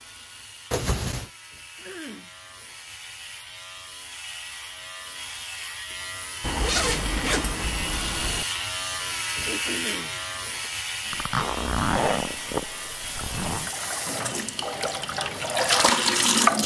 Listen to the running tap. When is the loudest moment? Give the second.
16 s.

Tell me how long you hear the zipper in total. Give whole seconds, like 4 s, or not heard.
5 s.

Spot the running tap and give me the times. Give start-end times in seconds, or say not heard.
11.1-16.6.